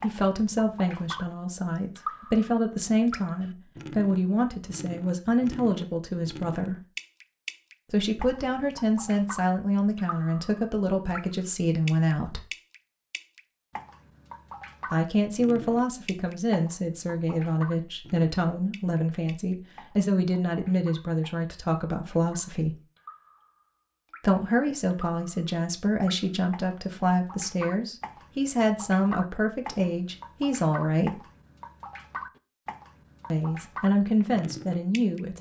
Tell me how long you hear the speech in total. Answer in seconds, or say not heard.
28 s.